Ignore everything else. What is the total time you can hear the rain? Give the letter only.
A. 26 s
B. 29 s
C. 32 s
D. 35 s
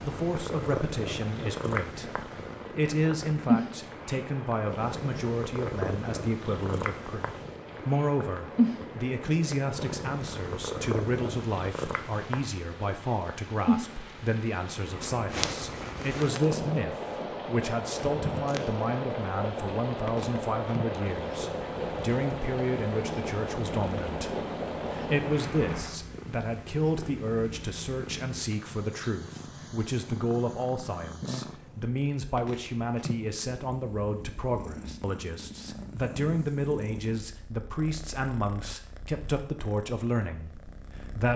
A.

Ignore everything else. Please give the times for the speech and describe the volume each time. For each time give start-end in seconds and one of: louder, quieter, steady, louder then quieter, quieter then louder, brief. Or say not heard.
0.0-41.3 steady.